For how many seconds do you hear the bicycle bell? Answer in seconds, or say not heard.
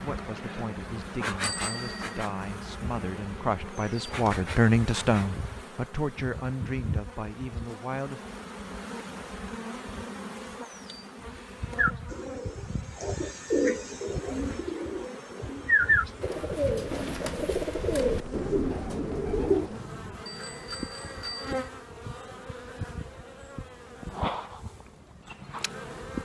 2 s.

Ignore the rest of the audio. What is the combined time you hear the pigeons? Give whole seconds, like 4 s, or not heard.
8 s.